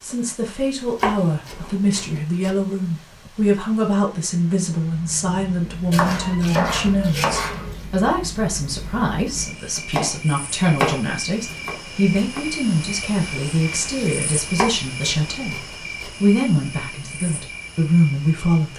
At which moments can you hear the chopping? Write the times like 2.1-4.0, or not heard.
1.0-2.5, 5.9-7.8, 9.8-12.4, 14.6-16.1.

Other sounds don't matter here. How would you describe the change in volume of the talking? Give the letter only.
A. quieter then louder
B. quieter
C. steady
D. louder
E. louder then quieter
C.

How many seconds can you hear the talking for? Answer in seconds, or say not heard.
19 s.